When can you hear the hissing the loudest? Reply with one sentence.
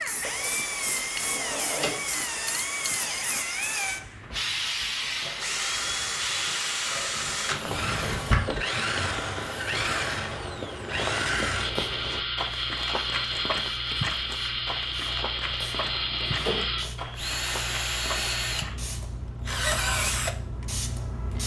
The volume of the hissing peaks at 5 seconds.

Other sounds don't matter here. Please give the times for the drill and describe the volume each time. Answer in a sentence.
You can hear the drill from 0.0 to 21.4 s, at a steady volume.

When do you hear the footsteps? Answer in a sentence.
The footsteps can be heard from 7.0 to 18.9 s.